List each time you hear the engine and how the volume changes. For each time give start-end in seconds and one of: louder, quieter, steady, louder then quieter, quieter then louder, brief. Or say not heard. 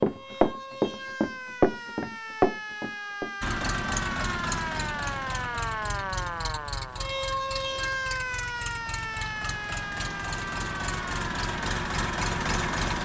3.4-13.0 quieter then louder.